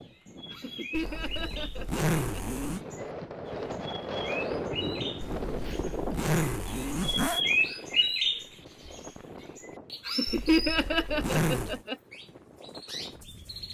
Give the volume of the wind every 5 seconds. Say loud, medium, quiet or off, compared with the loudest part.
loud, loud, quiet.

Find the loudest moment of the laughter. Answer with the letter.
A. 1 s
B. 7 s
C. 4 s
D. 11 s
D.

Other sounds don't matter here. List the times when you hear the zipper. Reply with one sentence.
You can hear the zipper from 0.9 to 2.8 s, from 5.2 to 7.4 s and from 10.2 to 11.8 s.